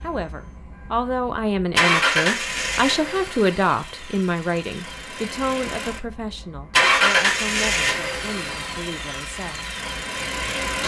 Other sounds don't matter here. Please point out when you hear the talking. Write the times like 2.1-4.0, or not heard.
0.0-9.7.